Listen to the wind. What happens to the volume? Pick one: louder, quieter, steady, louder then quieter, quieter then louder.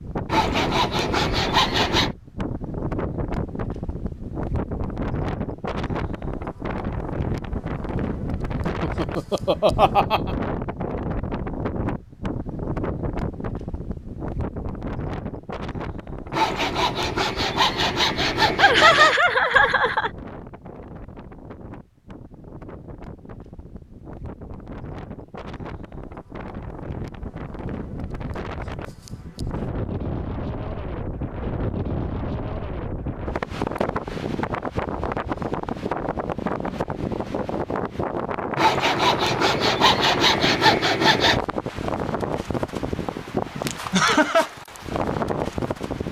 quieter then louder.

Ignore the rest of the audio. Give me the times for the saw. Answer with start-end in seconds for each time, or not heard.
0.2-2.1, 16.3-19.1, 38.5-41.4.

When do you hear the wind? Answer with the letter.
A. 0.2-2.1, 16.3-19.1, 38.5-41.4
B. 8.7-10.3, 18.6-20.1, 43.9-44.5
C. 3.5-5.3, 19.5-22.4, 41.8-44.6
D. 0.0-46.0
D.